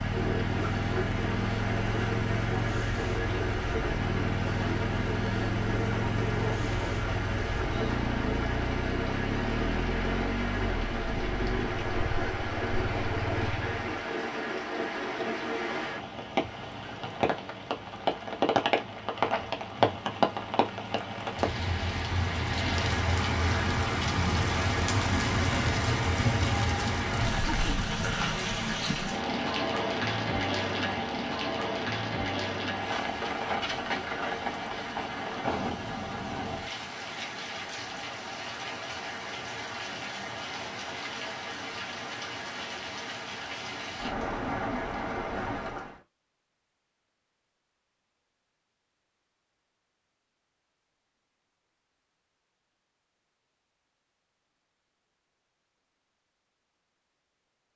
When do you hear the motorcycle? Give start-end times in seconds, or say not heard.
0.0-13.9.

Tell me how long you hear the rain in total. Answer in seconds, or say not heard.
46 s.